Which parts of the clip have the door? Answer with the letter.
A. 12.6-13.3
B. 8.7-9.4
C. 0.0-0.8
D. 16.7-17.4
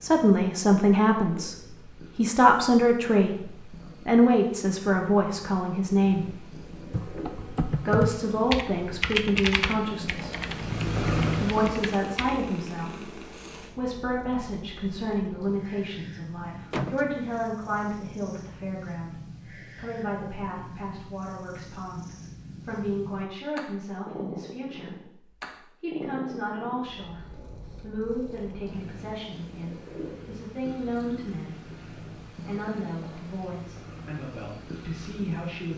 D.